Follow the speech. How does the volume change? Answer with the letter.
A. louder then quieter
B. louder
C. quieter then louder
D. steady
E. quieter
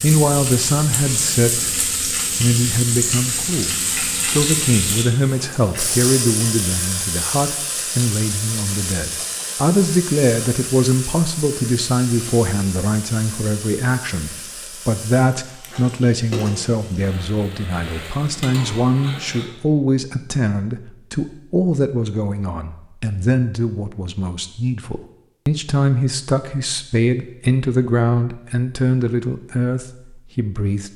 D.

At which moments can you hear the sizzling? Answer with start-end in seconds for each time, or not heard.
0.0-19.5.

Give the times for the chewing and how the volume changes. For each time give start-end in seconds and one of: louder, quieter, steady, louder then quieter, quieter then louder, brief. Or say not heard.
not heard.